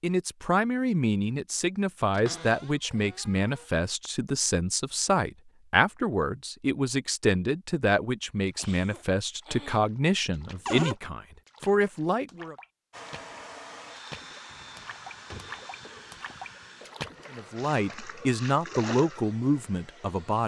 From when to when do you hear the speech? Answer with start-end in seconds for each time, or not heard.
0.0-12.6, 17.3-20.4.